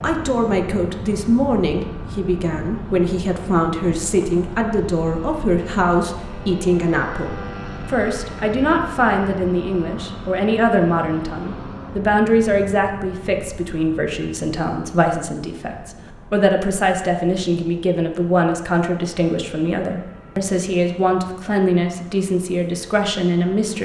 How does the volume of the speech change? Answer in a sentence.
The volume of the speech stays about the same.